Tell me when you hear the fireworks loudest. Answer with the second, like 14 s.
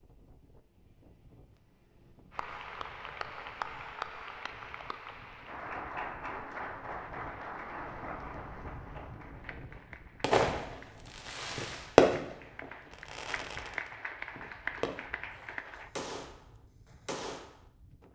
12 s.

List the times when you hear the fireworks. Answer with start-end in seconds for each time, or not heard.
10.2-15.1, 15.8-17.6.